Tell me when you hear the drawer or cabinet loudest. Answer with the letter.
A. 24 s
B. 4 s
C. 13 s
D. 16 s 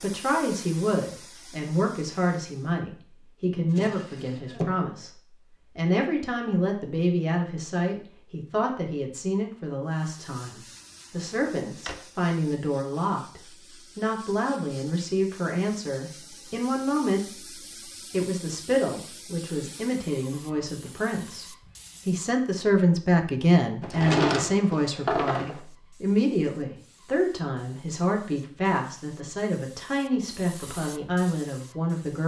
A.